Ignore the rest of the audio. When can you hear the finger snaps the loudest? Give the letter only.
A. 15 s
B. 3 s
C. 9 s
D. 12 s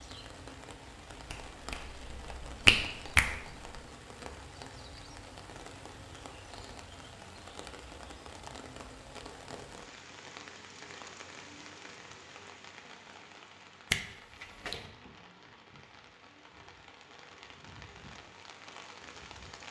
B.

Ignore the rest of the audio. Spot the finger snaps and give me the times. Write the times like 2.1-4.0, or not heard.
1.3-3.8, 13.9-14.8.